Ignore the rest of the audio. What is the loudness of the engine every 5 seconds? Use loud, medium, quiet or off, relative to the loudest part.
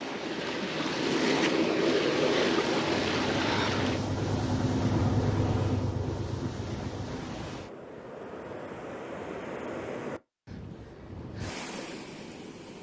loud, loud, off.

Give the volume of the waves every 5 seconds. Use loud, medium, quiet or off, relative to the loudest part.
loud, medium, quiet.